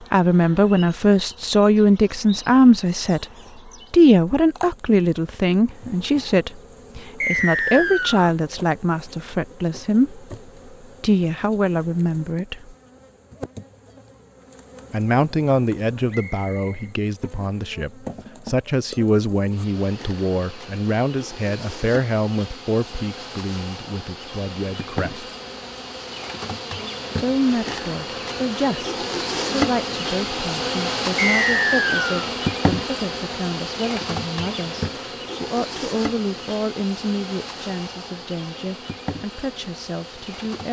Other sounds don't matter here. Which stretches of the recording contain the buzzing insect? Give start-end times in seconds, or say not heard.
0.0-40.6.